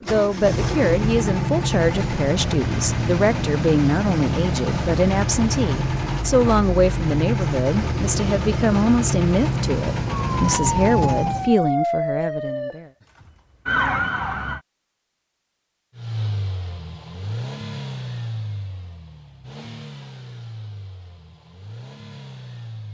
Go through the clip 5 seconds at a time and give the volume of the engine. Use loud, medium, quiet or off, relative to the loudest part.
loud, loud, loud, medium, quiet.